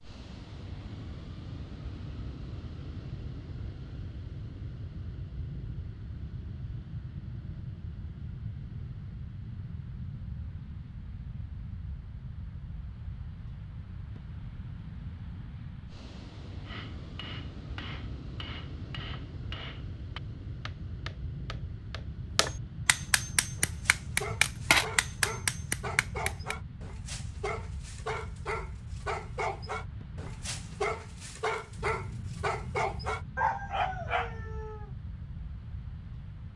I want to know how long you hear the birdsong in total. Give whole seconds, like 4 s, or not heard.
not heard.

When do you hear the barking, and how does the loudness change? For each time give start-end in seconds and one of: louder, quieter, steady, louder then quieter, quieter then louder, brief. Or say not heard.
23.6-34.9 louder.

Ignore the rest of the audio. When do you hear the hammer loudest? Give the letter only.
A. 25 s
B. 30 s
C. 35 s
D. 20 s
A.